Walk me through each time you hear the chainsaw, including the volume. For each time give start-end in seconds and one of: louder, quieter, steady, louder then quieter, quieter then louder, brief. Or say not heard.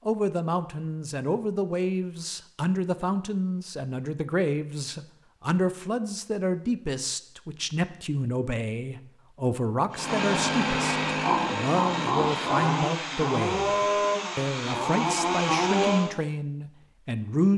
9.9-16.1 steady.